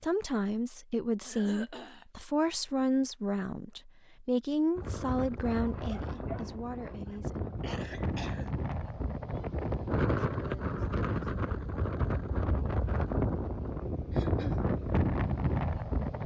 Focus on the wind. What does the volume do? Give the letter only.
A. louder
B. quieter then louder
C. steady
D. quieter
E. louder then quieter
A.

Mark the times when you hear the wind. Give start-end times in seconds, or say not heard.
4.8-16.2.